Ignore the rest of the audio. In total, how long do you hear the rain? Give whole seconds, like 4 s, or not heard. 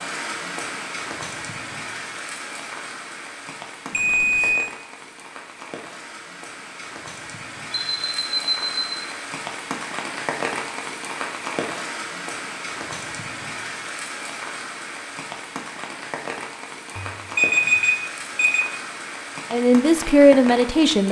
21 s.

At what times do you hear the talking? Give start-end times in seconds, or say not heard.
19.5-21.0.